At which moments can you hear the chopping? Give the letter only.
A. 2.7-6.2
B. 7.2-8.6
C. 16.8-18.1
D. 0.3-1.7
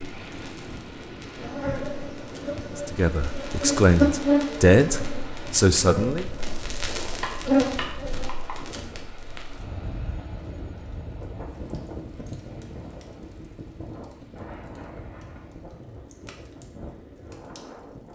B.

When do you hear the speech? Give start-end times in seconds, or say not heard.
2.7-6.2.